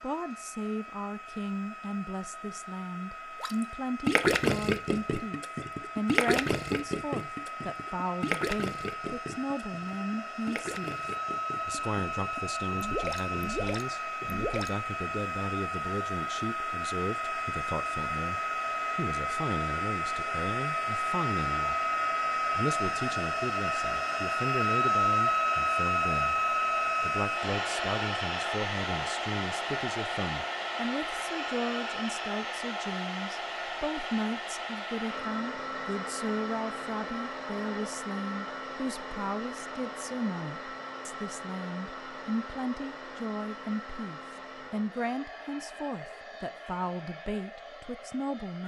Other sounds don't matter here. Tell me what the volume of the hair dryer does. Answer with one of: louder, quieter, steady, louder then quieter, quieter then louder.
louder then quieter.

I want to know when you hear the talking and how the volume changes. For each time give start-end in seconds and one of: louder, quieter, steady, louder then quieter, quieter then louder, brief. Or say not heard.
0.0-48.6 steady.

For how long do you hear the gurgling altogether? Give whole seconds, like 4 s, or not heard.
11 s.